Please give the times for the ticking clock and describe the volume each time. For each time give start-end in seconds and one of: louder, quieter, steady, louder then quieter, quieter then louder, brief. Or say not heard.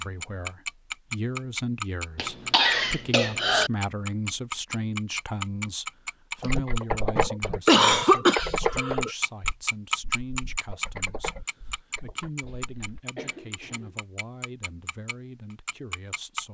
0.0-16.4 quieter.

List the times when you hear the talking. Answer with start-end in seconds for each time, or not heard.
0.0-16.4.